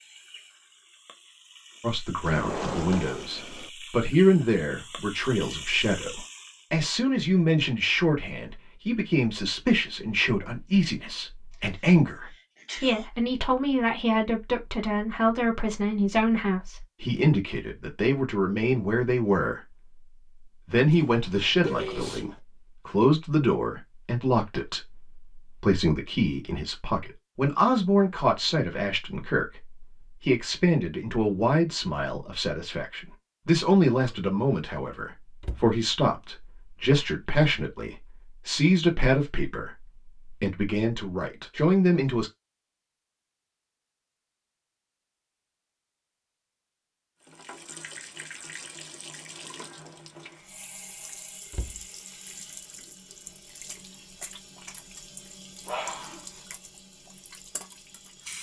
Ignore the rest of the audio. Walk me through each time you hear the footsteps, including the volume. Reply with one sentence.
You can't hear the footsteps here.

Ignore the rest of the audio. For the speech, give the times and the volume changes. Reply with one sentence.
The speech can be heard from 1.8 to 19.6 s, at a steady volume; and from 20.6 to 42.3 s, at a steady volume.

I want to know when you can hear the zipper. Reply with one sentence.
You can't hear the zipper here.